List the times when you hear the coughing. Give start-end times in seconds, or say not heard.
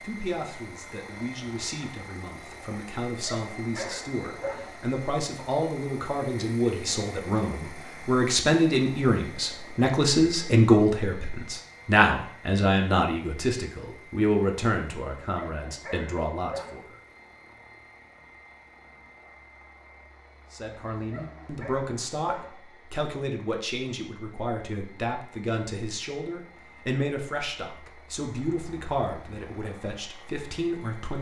not heard.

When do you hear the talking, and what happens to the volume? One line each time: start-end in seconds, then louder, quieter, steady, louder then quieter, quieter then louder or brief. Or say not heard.
0.0-16.9 louder then quieter
20.5-31.1 steady.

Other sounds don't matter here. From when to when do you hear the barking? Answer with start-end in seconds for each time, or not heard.
3.2-4.8, 15.3-16.9, 21.1-22.6.